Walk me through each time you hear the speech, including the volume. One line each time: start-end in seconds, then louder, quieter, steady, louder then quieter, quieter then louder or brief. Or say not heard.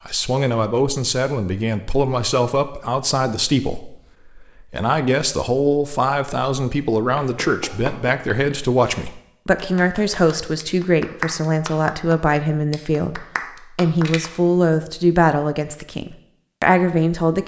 0.1-17.4 steady.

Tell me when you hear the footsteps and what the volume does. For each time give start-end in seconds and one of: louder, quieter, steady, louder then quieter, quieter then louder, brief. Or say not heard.
not heard.